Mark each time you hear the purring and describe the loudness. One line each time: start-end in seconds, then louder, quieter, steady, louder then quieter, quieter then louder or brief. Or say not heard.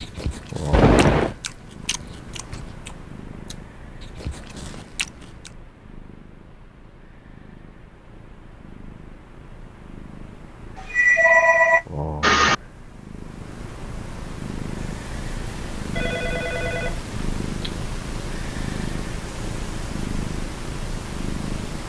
0.0-21.8 quieter then louder.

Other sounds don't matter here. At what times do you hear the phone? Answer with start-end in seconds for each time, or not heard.
0.7-1.4, 10.8-12.6, 15.9-17.9.